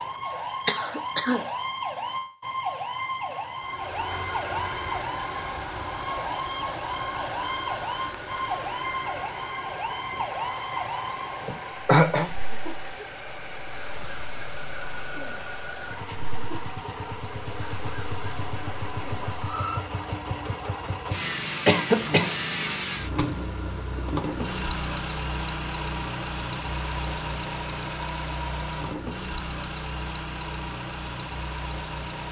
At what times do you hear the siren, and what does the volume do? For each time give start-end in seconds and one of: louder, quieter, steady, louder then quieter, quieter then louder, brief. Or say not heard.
0.0-19.9 quieter.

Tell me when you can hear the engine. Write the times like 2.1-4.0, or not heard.
3.6-32.2.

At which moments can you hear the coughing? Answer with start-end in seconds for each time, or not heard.
0.7-1.4, 11.4-12.3, 21.6-22.3.